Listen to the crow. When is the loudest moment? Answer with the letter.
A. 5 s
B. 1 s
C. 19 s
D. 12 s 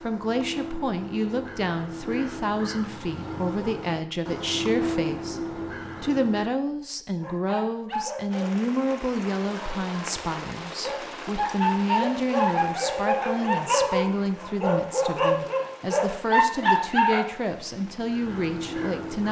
A.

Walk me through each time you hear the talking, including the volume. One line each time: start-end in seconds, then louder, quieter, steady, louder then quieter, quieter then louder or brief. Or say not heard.
0.0-19.2 steady.